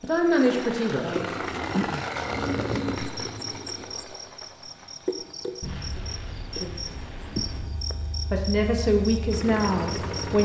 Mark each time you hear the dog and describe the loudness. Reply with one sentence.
You can't hear the dog here.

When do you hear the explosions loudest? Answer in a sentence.
The loudest moment of the explosions is at 6 seconds.